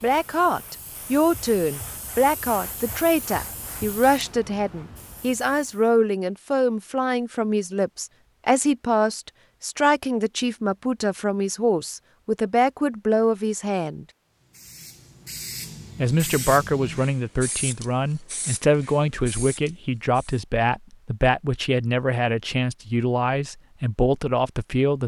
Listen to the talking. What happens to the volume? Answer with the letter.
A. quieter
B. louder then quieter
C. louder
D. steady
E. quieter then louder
D.